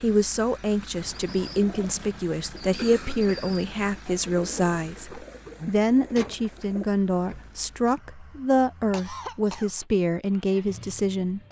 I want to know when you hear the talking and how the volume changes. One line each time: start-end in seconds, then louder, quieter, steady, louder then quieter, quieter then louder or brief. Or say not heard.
0.0-11.4 steady.